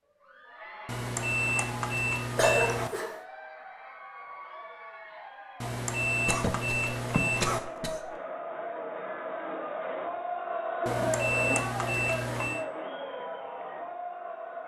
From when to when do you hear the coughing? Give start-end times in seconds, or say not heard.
2.4-3.1, 6.2-8.0, 10.8-11.7.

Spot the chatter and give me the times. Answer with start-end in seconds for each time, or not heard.
0.0-14.6.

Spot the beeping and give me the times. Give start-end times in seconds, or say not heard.
0.8-2.9, 5.6-7.6, 10.8-12.7.